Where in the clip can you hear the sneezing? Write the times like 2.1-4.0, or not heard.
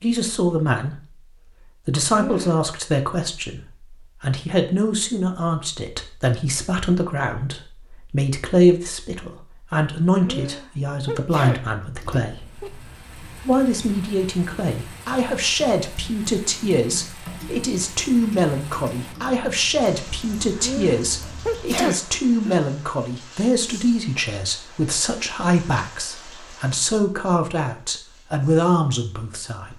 2.0-2.6, 10.2-12.8, 20.6-22.6.